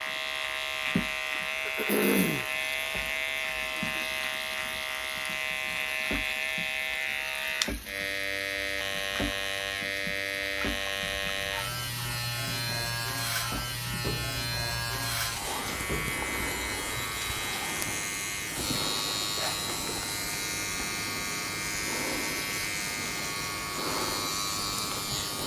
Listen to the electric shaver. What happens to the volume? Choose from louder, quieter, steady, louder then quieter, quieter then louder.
steady.